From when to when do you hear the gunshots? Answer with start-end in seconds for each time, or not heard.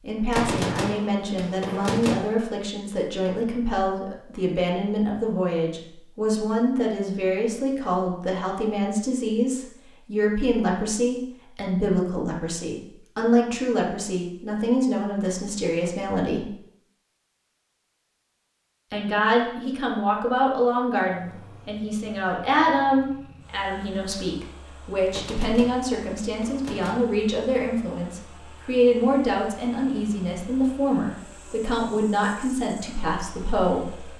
0.3-2.1, 25.1-26.9.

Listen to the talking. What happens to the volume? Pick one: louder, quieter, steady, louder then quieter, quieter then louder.
steady.